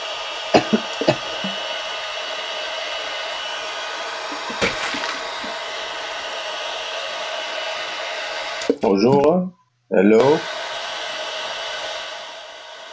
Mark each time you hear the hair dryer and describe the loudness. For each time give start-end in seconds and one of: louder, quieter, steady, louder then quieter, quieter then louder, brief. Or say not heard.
0.0-8.7 steady
10.2-12.8 brief.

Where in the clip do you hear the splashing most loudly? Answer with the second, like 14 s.
5 s.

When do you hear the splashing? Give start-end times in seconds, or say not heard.
0.9-1.6, 4.6-5.2, 8.6-9.2.